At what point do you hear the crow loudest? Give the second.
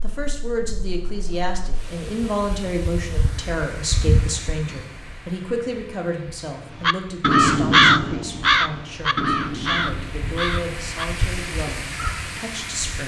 8 s.